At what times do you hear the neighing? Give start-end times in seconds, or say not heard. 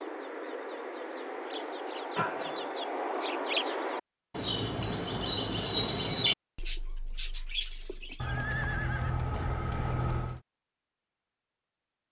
2.1-2.8, 8.2-10.4.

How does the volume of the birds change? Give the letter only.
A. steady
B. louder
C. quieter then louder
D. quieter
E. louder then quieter
E.